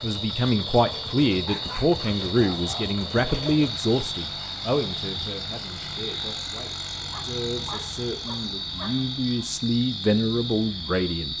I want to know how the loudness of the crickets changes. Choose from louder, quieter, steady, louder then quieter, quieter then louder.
steady.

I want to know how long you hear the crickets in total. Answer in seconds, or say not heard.
11 s.